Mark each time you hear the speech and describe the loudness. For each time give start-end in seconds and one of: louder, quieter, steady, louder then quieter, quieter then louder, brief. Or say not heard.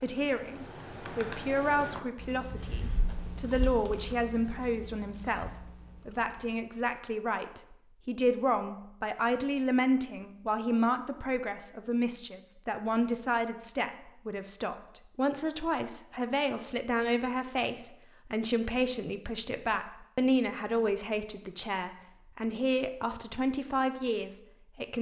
0.0-24.9 steady.